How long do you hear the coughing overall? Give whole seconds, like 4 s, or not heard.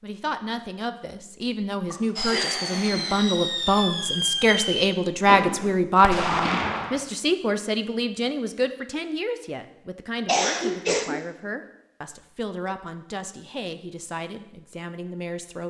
2 s.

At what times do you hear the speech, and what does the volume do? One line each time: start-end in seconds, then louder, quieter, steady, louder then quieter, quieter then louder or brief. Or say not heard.
0.0-15.6 louder then quieter.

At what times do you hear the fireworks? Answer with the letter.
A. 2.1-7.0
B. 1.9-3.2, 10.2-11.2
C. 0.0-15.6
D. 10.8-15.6
A.